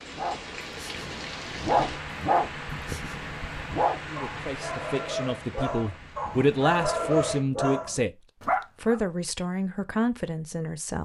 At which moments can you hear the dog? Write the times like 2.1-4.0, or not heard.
0.1-9.0.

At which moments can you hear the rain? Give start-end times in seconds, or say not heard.
0.0-7.5.